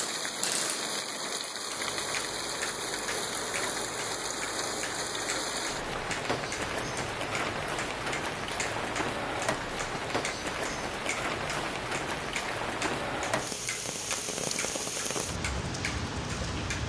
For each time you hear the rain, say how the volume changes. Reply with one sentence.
You can hear the rain from 0.0 to 16.8 s, at a steady volume.